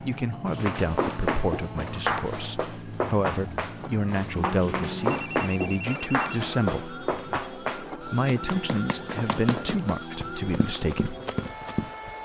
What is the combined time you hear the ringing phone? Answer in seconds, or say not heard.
5 s.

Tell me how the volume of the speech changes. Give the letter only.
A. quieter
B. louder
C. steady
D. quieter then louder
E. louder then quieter
C.